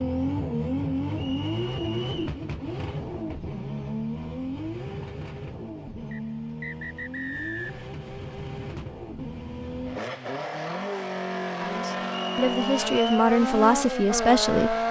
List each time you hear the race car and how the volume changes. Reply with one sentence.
The race car can be heard from 0.0 to 14.8 s, getting quieter then louder.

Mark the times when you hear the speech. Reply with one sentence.
The speech can be heard from 11.6 to 14.8 s.